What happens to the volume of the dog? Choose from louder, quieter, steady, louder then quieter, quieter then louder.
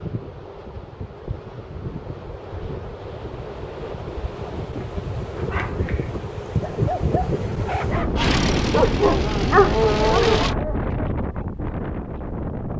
louder.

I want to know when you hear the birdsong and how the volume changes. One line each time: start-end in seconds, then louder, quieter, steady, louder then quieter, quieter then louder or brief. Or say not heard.
not heard.